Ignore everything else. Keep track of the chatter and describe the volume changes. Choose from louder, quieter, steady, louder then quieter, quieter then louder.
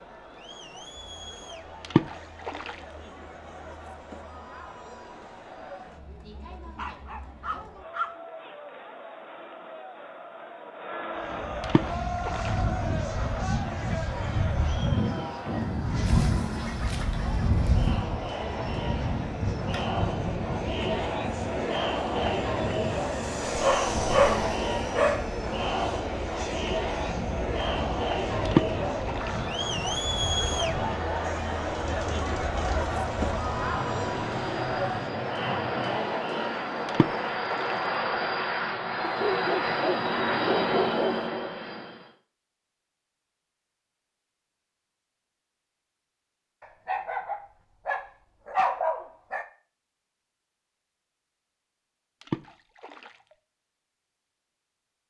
louder.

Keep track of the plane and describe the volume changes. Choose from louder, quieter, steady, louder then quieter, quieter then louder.
quieter then louder.